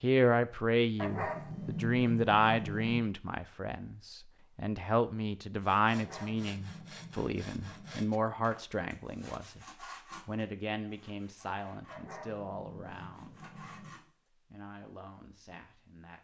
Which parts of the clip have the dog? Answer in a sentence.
You can hear the dog from 0.9 to 3.0 s, from 5.9 to 8.0 s and from 11.9 to 13.9 s.